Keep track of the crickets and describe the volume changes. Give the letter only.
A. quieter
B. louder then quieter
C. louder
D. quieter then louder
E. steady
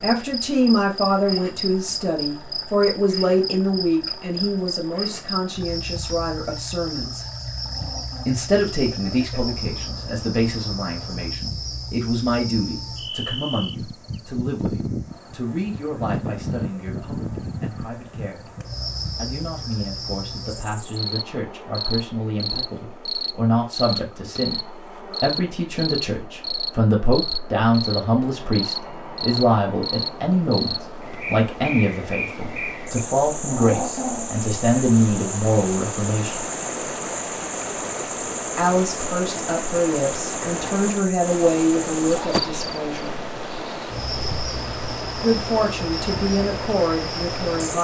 E.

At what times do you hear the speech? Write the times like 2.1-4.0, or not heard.
0.0-7.2, 8.2-18.5, 19.1-36.5, 38.5-43.1, 45.2-47.7.